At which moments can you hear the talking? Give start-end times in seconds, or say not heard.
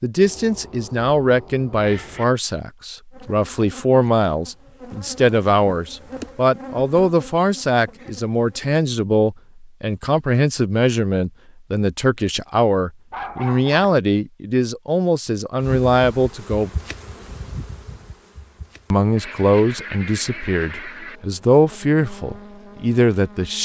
0.0-16.7, 18.9-23.6.